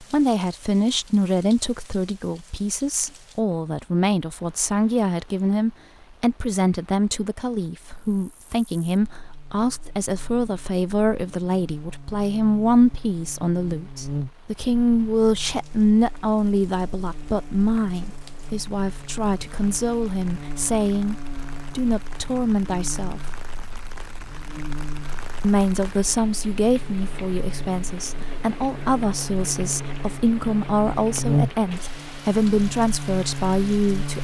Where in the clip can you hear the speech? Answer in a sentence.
You can hear the speech from 0.0 to 21.1 s, from 21.8 to 23.2 s and from 25.4 to 34.1 s.